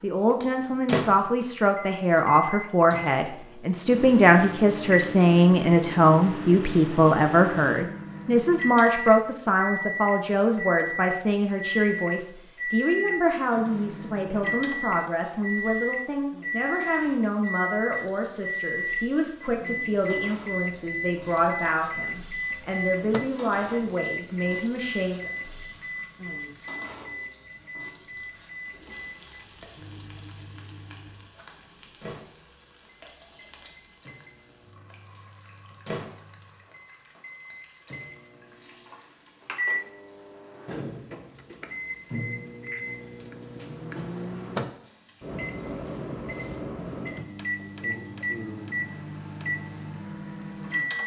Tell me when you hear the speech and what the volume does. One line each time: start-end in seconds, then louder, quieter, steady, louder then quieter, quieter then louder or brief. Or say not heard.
0.0-25.3 quieter.